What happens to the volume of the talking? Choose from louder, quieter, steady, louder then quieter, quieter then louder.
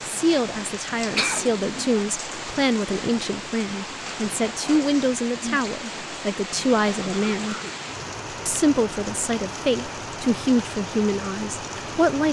steady.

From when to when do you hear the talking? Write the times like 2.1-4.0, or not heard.
0.1-7.5, 8.4-12.2.